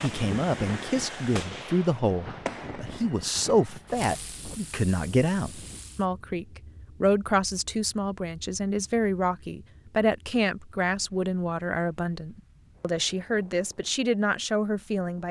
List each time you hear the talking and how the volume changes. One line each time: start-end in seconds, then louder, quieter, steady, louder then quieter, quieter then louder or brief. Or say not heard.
0.0-15.2 steady.